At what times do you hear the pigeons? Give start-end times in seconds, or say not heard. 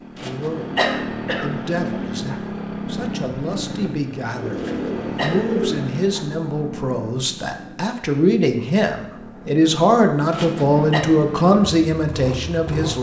4.3-6.0.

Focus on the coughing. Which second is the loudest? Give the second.
1 s.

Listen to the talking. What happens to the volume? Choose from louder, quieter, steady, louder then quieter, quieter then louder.
louder.